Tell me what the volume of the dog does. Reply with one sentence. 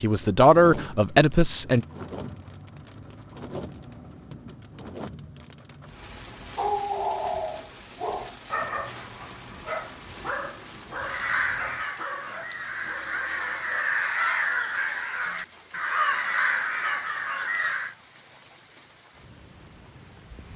The volume of the dog goes down.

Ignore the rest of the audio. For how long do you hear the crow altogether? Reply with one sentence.
You can hear the crow for 7 seconds altogether.